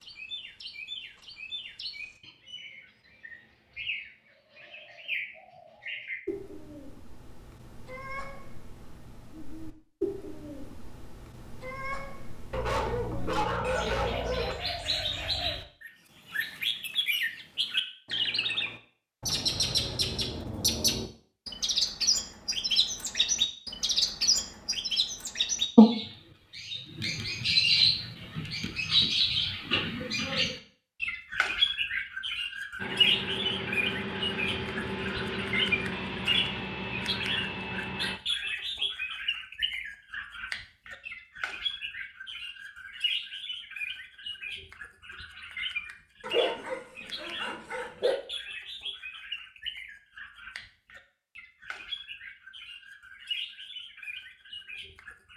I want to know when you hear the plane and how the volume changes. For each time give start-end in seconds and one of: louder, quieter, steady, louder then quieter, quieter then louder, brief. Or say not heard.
32.8-38.2 steady.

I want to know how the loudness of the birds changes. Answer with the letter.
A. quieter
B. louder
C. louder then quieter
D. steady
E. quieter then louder
C.